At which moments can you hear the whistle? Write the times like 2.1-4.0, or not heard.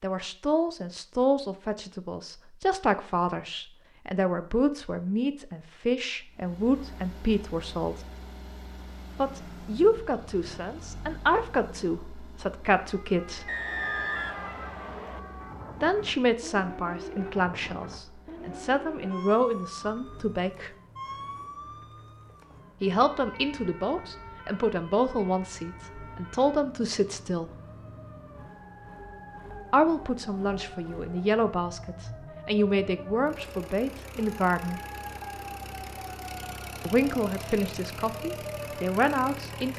13.4-15.2.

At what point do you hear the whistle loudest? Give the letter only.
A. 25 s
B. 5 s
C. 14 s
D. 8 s
C.